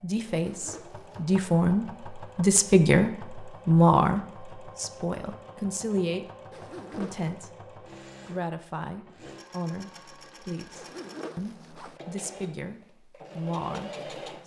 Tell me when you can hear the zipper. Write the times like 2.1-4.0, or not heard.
0.2-1.2, 6.5-7.4, 10.8-12.0.